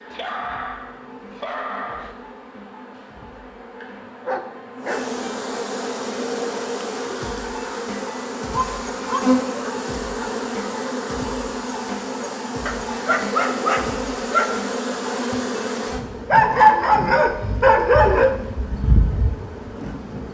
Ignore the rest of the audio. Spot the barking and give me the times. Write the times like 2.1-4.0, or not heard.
0.1-2.1, 4.2-5.1, 8.8-9.8, 12.7-14.5, 16.3-18.3.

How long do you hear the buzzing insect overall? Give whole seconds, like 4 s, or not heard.
20 s.